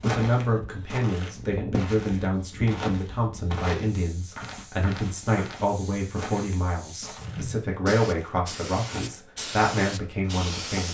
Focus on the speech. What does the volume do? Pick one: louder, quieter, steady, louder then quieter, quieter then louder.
steady.